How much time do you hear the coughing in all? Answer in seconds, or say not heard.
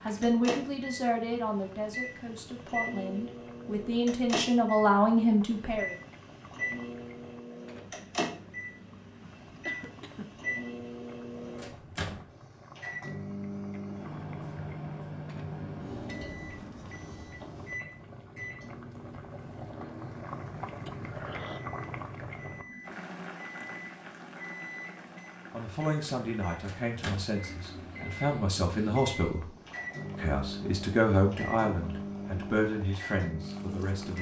2 s.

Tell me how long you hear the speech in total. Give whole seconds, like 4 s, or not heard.
14 s.